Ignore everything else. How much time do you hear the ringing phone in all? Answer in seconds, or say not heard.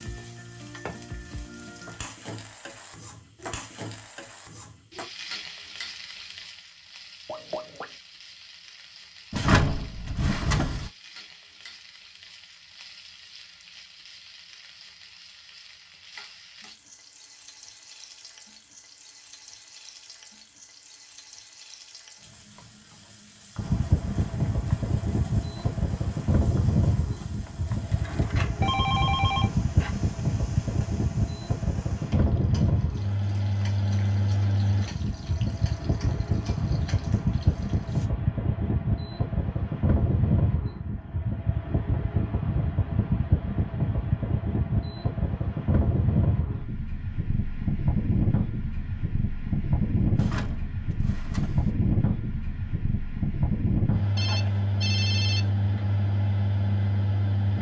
3 s.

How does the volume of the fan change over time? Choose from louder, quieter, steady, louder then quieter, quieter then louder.
steady.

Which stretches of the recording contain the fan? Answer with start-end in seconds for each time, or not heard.
23.6-57.5.